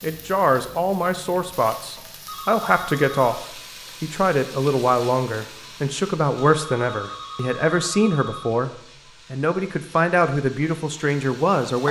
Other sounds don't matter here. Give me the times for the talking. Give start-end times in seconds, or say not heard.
0.0-8.7, 9.3-11.8.